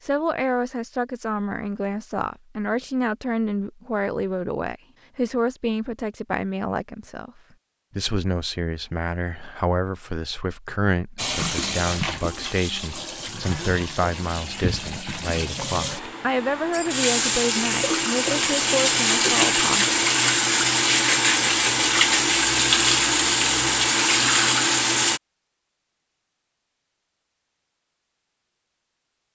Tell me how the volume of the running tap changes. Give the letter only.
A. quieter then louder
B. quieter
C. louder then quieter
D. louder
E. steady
D.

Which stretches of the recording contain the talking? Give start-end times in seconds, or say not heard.
0.0-7.3, 8.0-19.9.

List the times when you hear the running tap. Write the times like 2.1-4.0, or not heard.
11.2-25.2.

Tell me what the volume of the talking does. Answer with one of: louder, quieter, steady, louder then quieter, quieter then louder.
steady.